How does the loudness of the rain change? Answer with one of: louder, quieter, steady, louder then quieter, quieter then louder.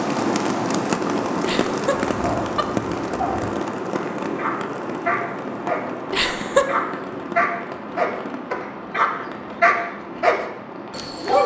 quieter.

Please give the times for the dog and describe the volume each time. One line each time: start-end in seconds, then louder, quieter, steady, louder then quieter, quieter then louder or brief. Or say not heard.
2.1-11.4 louder.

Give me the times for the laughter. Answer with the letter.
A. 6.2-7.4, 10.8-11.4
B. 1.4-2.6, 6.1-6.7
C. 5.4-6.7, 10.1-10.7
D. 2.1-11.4
B.